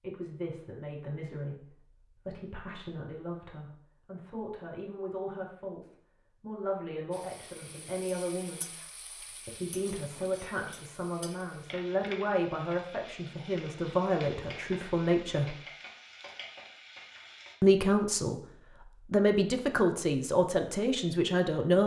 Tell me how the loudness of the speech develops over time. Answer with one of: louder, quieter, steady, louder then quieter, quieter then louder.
louder.